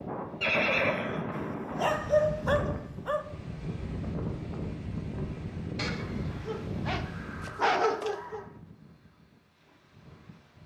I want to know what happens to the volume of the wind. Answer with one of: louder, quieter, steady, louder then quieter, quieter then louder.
quieter.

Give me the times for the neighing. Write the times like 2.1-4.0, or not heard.
0.4-1.2, 5.8-8.5.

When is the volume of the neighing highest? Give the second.
1 s.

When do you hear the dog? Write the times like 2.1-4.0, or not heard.
1.3-3.2, 5.8-8.4.